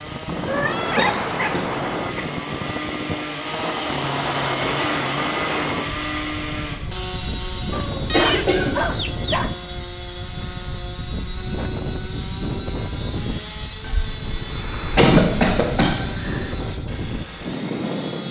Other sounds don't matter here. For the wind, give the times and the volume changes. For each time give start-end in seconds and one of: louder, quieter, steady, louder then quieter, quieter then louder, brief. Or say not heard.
0.0-18.2 steady.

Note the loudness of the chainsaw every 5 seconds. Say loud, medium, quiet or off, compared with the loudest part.
loud, loud, medium, medium.